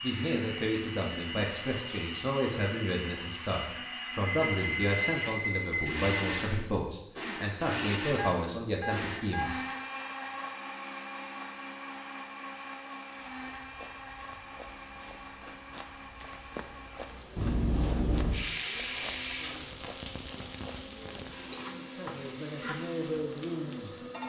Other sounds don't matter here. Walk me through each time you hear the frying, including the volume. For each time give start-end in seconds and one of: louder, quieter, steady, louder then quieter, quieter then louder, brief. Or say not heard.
18.3-24.2 quieter.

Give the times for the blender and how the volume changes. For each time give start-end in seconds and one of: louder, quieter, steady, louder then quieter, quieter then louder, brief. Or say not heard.
0.0-24.2 quieter.